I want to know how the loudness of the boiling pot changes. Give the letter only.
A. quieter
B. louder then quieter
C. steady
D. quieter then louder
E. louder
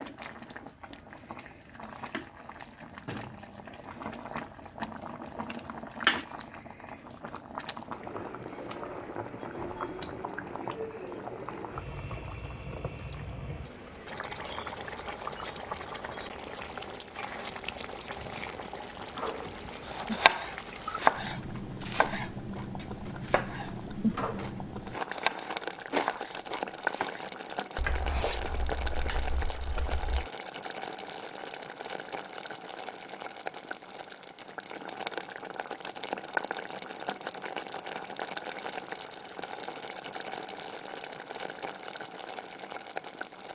C.